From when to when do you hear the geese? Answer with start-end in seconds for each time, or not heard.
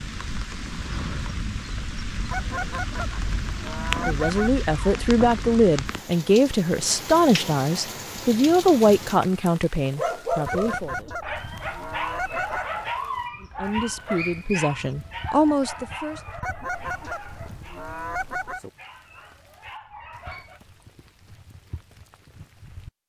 2.3-4.6, 10.4-12.7, 16.4-18.6.